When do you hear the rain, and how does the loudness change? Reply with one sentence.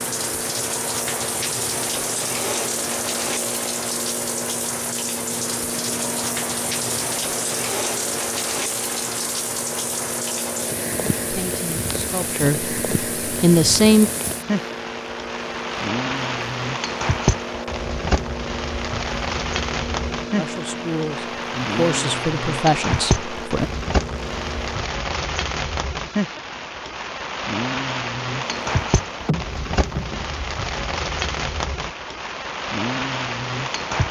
The rain can be heard from 0.0 to 34.0 s, at a steady volume.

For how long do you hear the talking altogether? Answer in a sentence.
The talking can be heard for 6 seconds in total.